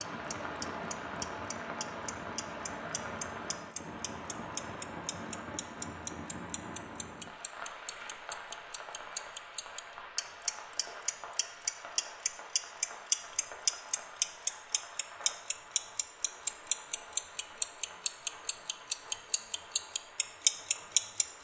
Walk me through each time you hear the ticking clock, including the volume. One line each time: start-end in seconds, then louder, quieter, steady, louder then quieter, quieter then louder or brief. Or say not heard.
0.0-21.3 louder.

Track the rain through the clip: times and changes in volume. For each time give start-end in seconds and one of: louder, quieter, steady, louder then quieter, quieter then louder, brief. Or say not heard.
0.0-21.3 quieter.